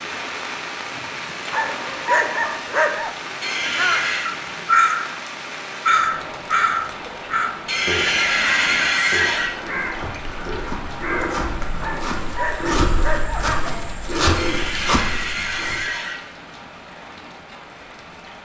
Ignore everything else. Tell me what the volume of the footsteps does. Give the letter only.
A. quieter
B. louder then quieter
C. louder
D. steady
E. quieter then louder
C.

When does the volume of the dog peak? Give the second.
2 s.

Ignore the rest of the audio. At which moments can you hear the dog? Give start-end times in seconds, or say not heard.
1.5-3.1, 11.8-13.8.